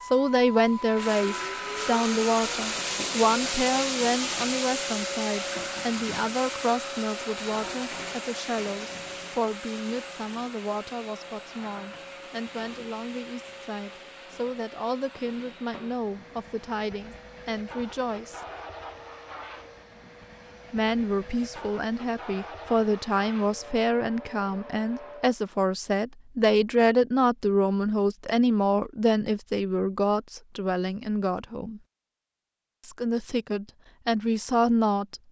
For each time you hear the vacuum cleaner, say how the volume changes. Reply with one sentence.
The vacuum cleaner can be heard from 0.0 to 25.4 s, getting quieter.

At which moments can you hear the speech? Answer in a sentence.
You can hear the speech from 0.0 to 18.4 s, from 20.7 to 31.8 s and from 32.8 to 35.2 s.